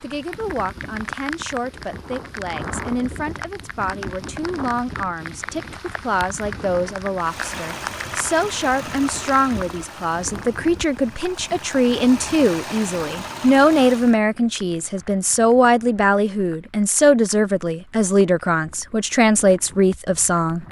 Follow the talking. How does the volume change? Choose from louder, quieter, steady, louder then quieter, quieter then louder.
louder.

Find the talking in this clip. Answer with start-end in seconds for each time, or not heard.
0.0-20.6.